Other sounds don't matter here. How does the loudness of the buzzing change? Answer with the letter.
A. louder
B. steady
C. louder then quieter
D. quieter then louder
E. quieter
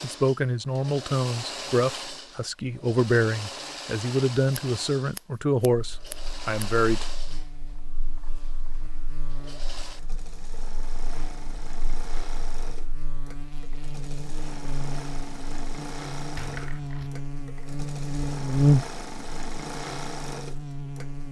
A.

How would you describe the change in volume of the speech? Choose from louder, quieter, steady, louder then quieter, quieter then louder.
steady.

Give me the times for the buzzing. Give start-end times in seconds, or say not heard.
5.8-21.2.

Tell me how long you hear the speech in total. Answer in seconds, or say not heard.
7 s.